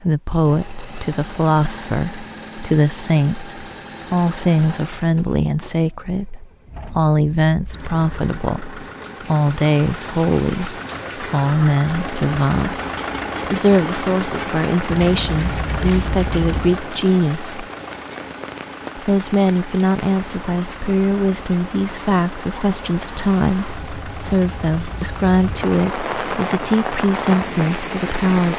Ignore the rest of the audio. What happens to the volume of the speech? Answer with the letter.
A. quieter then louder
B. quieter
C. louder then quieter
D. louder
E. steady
E.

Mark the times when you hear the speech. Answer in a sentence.
You can hear the speech from 0.0 to 12.8 s, from 13.4 to 17.6 s and from 18.9 to 28.5 s.